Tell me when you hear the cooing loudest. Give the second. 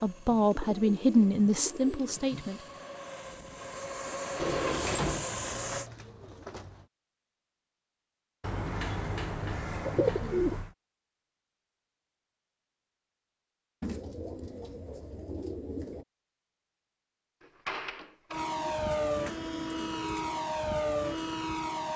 10 s.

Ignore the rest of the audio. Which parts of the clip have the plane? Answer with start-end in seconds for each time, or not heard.
0.0-5.9, 18.3-21.9.